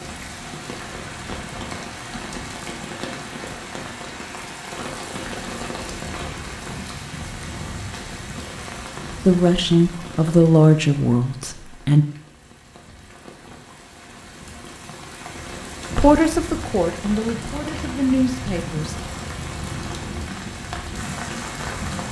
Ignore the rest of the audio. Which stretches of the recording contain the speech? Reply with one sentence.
You can hear the speech from 9.2 to 12.1 s and from 15.9 to 18.9 s.